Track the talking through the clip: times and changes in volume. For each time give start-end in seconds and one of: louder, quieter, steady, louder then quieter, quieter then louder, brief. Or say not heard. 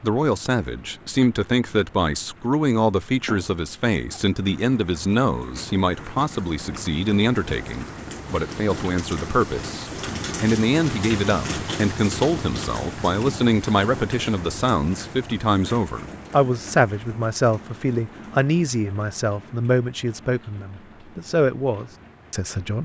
0.0-22.8 steady.